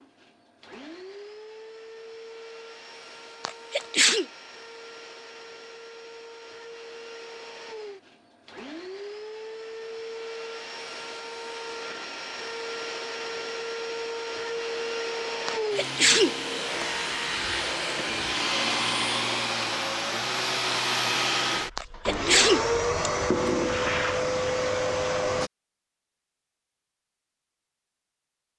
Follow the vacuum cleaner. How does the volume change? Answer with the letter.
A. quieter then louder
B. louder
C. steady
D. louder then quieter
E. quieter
B.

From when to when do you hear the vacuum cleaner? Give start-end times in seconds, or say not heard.
0.0-25.5.